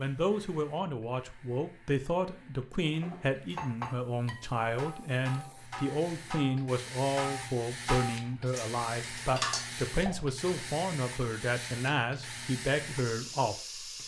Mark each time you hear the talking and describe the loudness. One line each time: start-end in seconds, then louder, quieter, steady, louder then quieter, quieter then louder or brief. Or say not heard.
0.0-13.8 steady.